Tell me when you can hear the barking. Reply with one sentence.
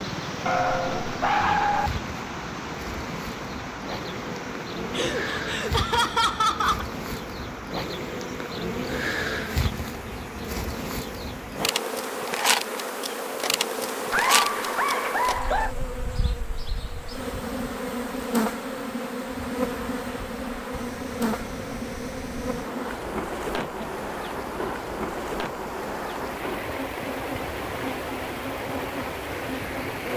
You can hear the barking from 0.5 to 1.9 s.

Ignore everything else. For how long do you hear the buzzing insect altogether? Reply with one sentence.
The buzzing insect can be heard for 30 seconds in total.